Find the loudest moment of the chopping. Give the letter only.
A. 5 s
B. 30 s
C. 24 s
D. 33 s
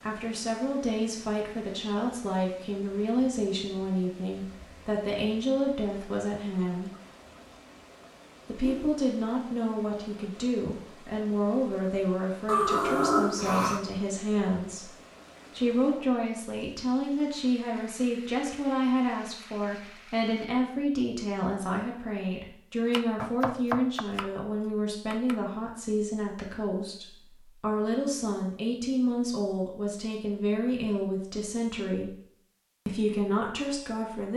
C.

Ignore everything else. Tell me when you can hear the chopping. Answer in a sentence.
You can hear the chopping from 22.9 to 25.4 s.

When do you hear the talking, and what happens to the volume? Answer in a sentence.
The talking can be heard from 0.0 to 6.9 s, at a steady volume; from 8.4 to 32.1 s, at a steady volume; and briefly from 32.9 to 34.3 s.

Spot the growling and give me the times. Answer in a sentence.
The growling can be heard from 12.4 to 13.8 s.